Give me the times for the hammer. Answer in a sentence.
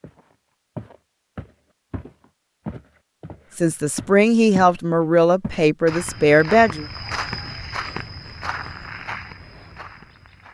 You can't hear the hammer here.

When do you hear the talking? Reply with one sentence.
The talking can be heard from 3.5 to 6.8 s.